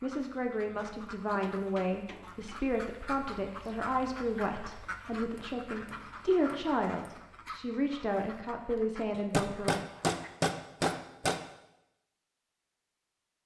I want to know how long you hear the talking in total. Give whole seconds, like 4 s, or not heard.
10 s.